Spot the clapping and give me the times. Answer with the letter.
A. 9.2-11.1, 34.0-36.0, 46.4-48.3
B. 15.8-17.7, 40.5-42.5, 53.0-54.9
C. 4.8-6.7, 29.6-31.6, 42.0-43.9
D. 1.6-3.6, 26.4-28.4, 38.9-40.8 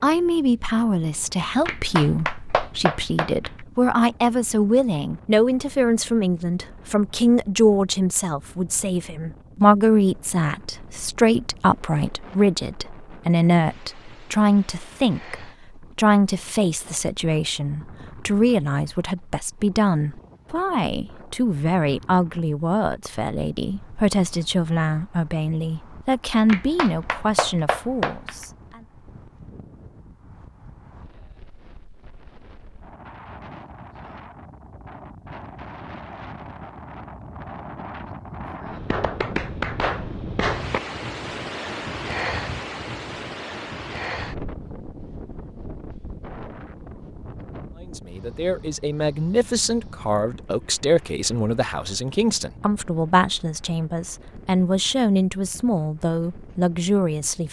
D.